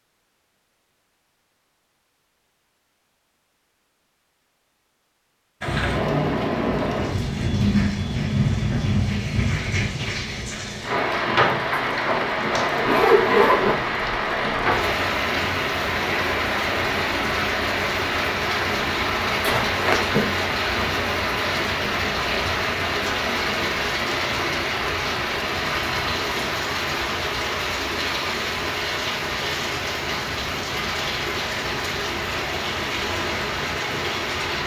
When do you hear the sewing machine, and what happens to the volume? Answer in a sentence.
The sewing machine can't be heard in this clip.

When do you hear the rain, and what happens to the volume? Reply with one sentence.
The rain can be heard from 5.6 to 34.6 s, at a steady volume.